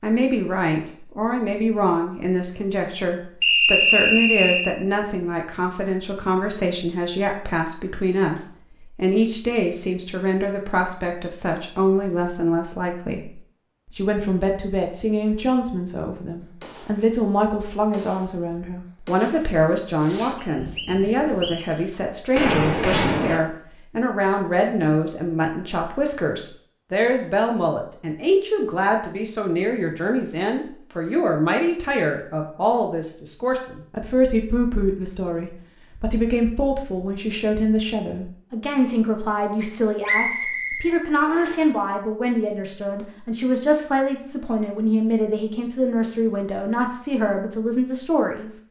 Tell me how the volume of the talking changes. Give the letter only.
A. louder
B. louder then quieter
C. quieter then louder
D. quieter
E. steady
E.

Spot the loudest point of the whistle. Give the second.
4 s.